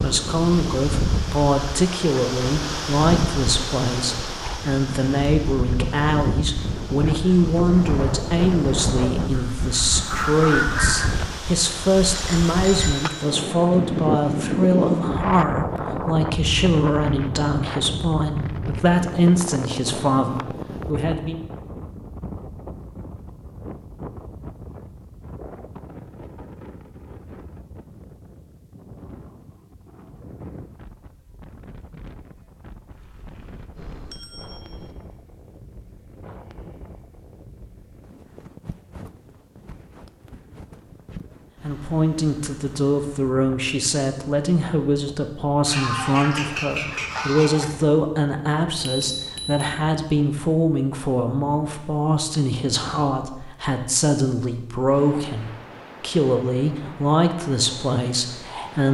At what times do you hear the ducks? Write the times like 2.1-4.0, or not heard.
9.3-11.1, 45.6-47.6.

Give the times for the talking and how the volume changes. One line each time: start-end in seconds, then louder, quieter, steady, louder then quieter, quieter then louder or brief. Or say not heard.
0.0-21.4 steady
41.6-58.8 steady.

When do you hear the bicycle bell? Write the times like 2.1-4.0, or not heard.
12.1-13.3, 32.9-35.0, 48.8-49.6.